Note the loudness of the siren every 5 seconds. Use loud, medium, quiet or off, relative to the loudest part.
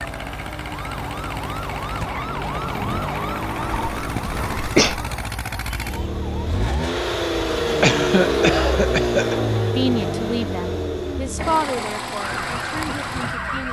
loud, medium, loud.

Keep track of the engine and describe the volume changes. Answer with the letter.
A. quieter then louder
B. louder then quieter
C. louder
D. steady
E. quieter
B.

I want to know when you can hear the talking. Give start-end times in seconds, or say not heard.
9.7-13.6.